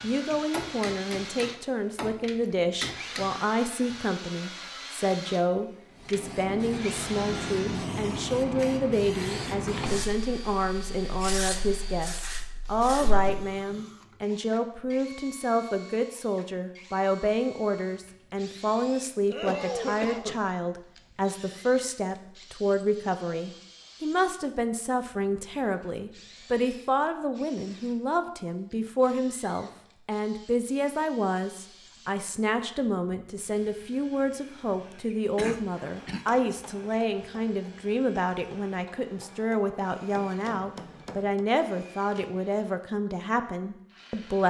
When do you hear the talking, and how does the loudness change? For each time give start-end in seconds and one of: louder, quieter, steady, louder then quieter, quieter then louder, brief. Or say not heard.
0.0-44.4 steady.